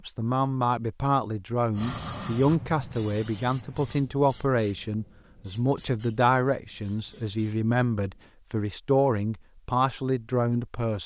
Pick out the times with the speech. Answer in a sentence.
The speech can be heard from 0.1 to 11.0 s.